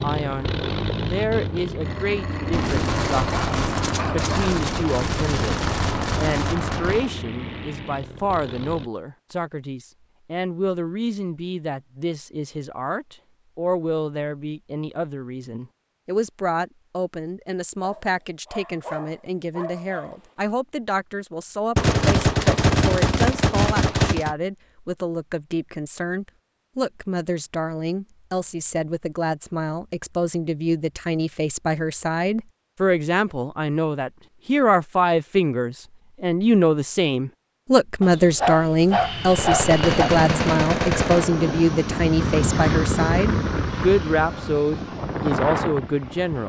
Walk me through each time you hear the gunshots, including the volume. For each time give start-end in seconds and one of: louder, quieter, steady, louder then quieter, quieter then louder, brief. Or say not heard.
2.5-7.1 steady
21.8-24.4 brief
39.2-41.2 brief.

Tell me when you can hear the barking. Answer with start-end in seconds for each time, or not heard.
1.9-4.5, 17.8-20.3, 38.0-40.1.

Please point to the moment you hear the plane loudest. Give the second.
43 s.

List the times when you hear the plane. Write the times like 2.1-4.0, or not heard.
0.0-8.9, 38.9-46.4.